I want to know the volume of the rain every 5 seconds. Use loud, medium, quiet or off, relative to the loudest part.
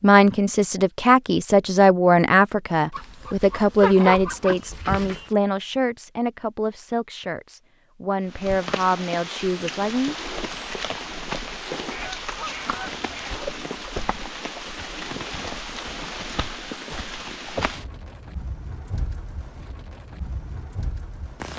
off, loud, loud, loud, medium.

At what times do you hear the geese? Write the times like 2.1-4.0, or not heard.
2.9-5.3, 11.9-13.5.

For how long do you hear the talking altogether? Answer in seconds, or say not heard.
10 s.